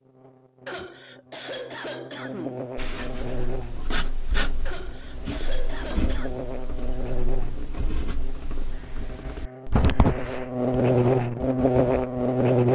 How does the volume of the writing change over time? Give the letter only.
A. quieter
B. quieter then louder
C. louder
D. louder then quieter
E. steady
B.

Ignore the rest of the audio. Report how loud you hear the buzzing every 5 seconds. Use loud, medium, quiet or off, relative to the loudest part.
quiet, quiet, loud.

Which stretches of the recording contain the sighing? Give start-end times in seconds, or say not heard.
0.7-2.6, 4.7-6.4, 8.7-10.5.